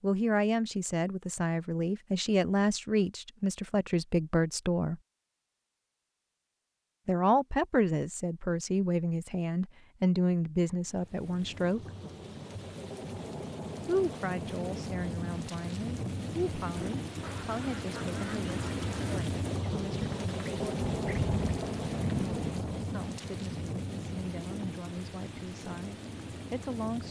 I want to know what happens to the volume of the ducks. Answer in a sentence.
The volume of the ducks goes up.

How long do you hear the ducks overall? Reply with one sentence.
You can hear the ducks for 6 seconds altogether.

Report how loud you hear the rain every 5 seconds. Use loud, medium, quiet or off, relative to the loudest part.
off, off, medium, loud, loud, medium.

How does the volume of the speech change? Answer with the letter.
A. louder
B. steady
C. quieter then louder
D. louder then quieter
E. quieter
E.